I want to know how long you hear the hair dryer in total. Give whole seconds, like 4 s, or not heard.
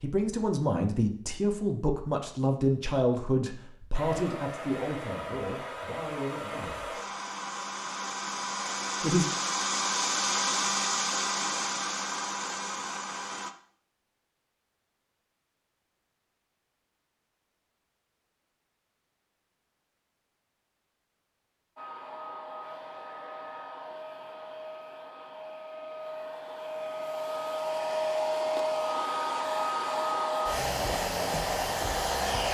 20 s.